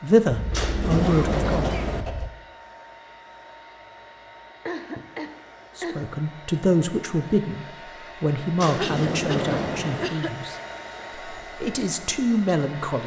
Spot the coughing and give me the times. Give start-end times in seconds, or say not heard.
0.3-2.3, 4.7-6.2, 8.8-10.3.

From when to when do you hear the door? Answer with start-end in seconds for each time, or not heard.
0.5-2.0, 8.6-10.1.